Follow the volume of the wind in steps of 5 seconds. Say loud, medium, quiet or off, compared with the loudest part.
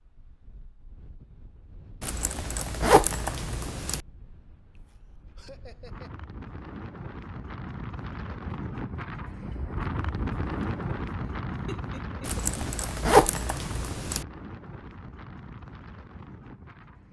quiet, loud, loud, medium.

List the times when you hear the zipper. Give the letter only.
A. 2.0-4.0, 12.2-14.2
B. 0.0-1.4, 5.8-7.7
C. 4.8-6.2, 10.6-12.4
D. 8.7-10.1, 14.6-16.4
A.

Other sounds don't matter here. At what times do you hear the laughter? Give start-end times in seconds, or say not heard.
4.8-6.2, 10.6-12.4.